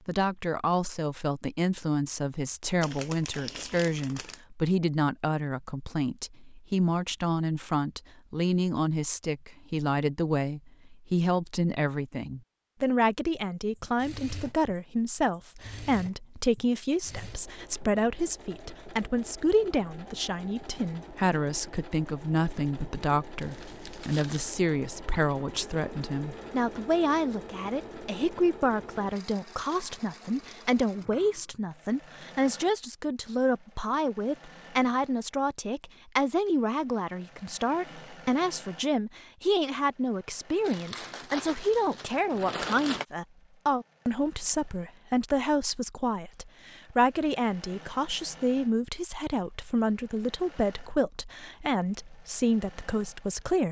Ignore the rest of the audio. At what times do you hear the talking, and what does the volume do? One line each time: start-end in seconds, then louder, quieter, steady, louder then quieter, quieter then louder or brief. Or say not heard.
0.1-53.6 steady.